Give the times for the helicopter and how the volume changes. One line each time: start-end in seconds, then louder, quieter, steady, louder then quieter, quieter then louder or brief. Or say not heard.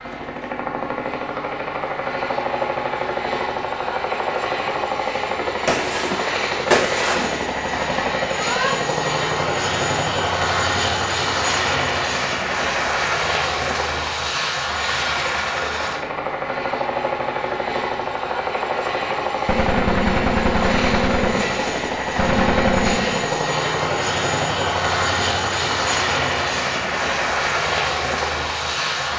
0.0-29.1 steady.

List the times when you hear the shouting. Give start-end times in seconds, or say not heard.
8.2-8.8.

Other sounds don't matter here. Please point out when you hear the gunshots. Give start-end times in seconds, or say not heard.
5.7-7.3, 19.4-23.3.